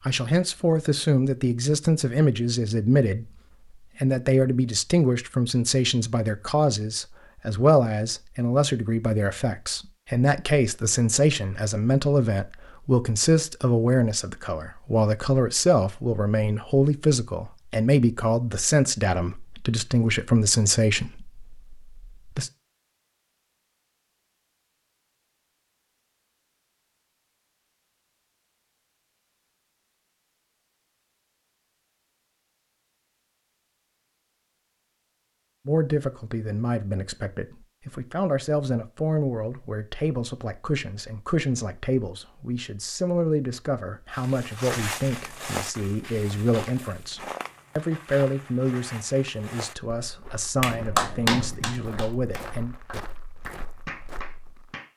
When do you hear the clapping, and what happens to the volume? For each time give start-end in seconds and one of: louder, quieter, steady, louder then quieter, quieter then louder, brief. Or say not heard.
50.6-54.9 quieter then louder.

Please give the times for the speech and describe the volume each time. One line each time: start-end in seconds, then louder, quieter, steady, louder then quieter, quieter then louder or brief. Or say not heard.
0.1-22.5 steady
35.6-52.8 steady.